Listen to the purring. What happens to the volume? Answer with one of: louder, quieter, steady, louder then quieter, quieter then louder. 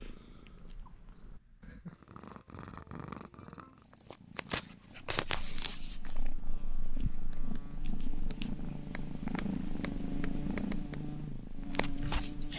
louder.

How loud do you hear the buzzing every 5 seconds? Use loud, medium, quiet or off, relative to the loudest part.
off, medium, loud.